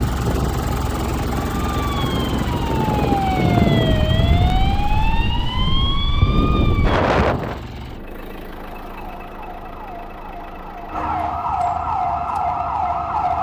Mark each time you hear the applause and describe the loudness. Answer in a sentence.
You can't hear the applause here.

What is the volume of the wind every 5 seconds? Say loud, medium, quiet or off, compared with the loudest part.
loud, loud, off.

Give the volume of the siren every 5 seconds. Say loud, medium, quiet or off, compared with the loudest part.
loud, medium, loud.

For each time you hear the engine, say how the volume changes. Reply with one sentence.
The engine can be heard from 0.0 to 13.3 s, getting quieter.